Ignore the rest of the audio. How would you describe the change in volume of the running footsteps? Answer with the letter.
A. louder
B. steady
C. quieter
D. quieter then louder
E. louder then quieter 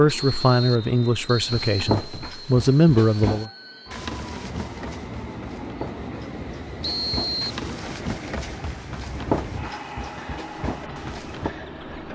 D.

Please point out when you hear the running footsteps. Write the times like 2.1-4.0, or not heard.
1.4-11.6.